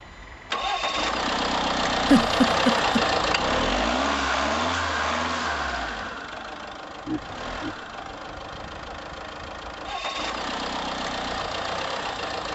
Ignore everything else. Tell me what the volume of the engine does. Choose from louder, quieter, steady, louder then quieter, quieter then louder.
quieter then louder.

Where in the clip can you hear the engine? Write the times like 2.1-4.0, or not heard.
0.0-12.5.